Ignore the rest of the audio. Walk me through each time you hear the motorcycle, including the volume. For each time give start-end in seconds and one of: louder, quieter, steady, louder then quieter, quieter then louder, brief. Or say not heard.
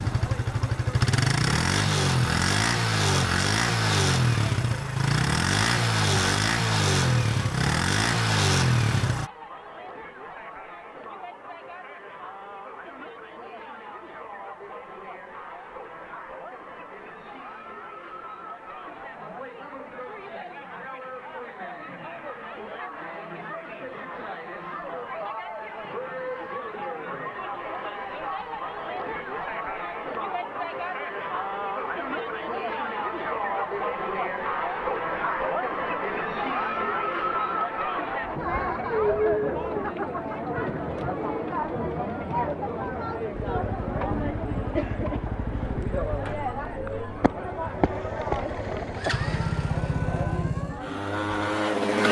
0.0-9.3 steady
43.3-52.0 louder.